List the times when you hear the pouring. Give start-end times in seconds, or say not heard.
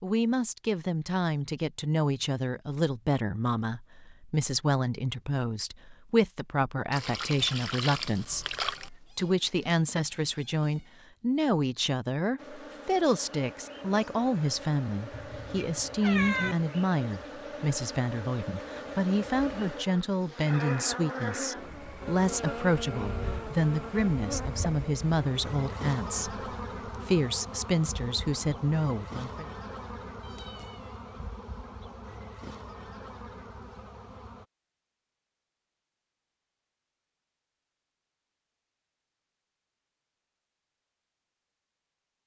6.9-8.9.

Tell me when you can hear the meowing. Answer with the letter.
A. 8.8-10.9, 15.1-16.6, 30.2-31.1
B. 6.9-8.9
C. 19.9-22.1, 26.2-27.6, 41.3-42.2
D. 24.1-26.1
A.